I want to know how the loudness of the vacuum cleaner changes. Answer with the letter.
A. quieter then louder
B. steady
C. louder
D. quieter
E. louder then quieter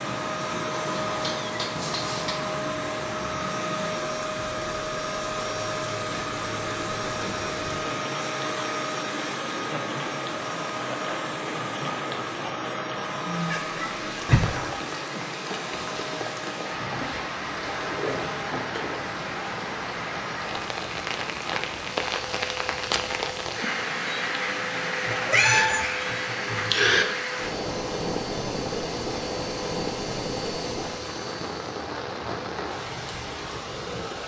D.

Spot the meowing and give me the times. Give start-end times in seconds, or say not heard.
1.1-2.5, 13.5-14.7, 25.1-27.1.